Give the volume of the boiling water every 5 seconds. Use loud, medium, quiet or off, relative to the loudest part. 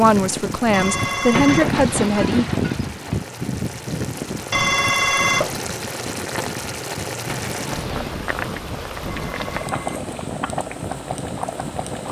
medium, loud, loud.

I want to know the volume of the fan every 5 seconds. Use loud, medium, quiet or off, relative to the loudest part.
loud, medium, medium.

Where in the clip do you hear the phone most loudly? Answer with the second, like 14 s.
5 s.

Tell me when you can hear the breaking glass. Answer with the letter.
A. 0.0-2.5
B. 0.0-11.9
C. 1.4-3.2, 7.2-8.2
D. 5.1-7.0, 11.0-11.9
C.